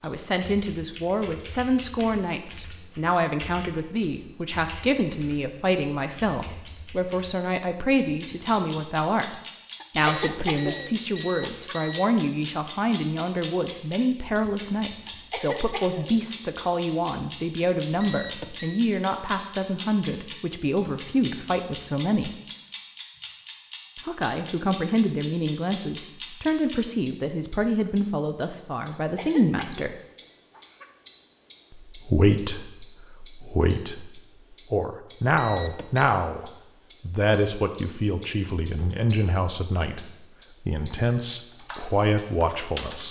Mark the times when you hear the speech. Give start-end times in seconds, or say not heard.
0.0-22.4, 24.1-29.9, 31.7-43.0.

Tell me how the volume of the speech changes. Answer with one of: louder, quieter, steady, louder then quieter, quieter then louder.
steady.